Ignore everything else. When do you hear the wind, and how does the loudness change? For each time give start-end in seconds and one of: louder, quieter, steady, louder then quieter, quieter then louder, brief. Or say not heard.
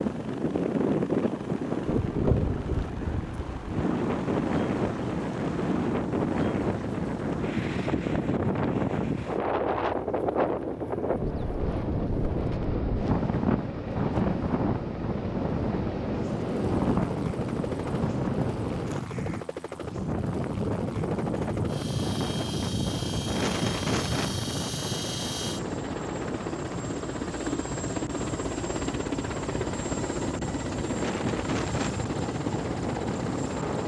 0.0-33.8 quieter.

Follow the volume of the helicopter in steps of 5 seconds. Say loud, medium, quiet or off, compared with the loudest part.
medium, medium, medium, medium, medium, loud, loud.